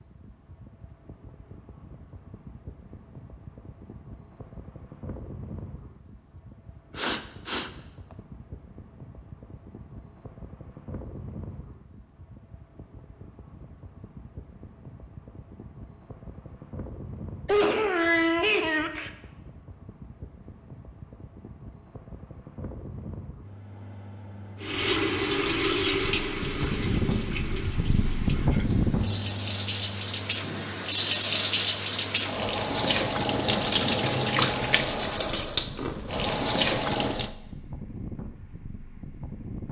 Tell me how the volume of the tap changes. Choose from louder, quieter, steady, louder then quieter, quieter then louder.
quieter then louder.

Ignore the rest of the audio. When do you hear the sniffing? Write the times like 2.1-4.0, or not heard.
7.0-7.7, 17.4-19.1, 27.9-28.8.